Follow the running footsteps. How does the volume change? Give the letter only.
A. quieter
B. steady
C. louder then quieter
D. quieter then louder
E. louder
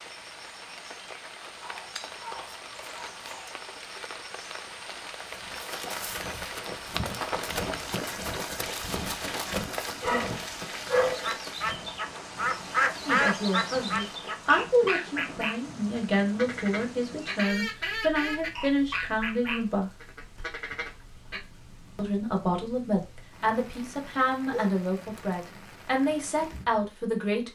A.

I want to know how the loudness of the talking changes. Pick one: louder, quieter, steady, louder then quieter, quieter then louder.
steady.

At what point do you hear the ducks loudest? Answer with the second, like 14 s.
13 s.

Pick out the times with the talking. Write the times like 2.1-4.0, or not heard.
13.1-19.9, 21.9-27.5.